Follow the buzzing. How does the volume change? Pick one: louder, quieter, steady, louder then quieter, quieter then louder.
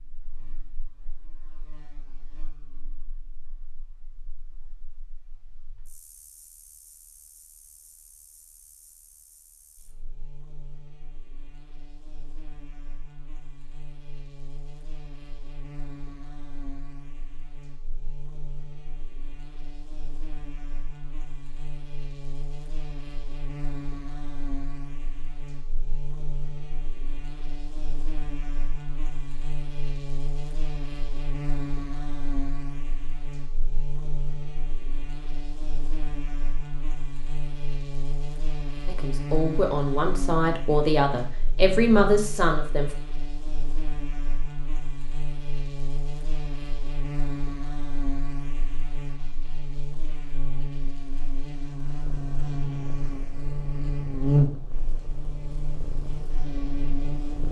louder.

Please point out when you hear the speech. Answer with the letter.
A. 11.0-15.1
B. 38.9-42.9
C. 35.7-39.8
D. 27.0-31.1
B.